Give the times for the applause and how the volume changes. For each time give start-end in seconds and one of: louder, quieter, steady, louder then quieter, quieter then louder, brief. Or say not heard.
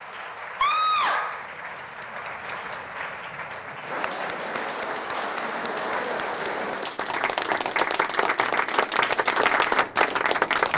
0.0-10.7 louder.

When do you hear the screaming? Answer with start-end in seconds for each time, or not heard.
0.6-1.4.